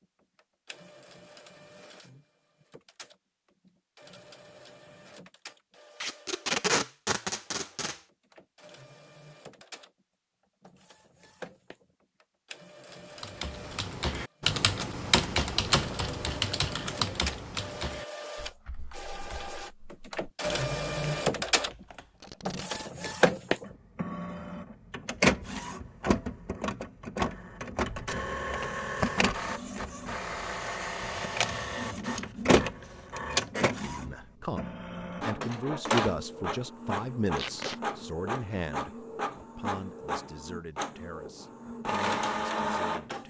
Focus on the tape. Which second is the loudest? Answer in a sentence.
The loudest moment of the tape is at 7 seconds.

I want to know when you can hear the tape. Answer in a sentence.
The tape can be heard from 6.0 to 8.0 s, from 22.2 to 22.9 s and from 37.4 to 37.8 s.